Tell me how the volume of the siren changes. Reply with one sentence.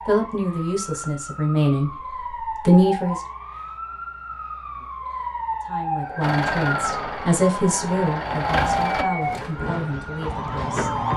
The volume of the siren goes up.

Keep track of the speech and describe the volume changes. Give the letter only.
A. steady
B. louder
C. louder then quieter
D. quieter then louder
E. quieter
E.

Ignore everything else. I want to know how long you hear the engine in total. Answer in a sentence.
The engine can be heard for 3 seconds in total.